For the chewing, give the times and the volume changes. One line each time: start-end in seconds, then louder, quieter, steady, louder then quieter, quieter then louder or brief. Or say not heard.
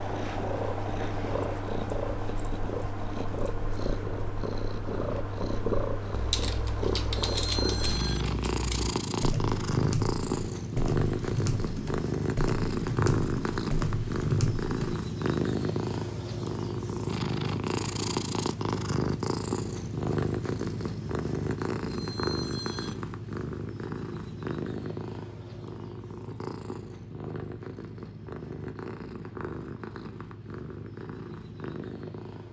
not heard.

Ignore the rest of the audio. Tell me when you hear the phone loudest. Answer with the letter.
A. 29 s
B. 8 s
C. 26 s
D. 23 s
B.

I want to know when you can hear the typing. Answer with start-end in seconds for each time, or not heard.
6.1-14.9.